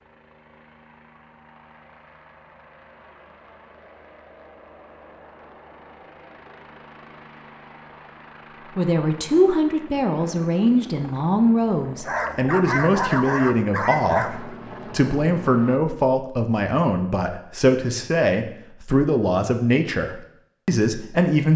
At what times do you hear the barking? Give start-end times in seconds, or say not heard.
12.1-14.6.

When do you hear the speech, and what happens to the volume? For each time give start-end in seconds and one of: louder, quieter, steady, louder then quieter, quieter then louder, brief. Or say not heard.
8.8-21.5 steady.